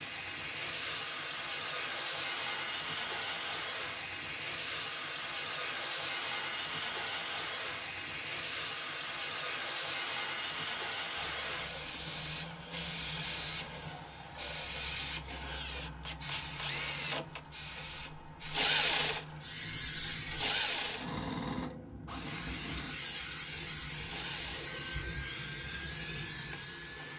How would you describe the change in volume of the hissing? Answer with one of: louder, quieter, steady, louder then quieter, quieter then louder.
steady.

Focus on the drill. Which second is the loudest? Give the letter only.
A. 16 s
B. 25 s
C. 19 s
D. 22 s
C.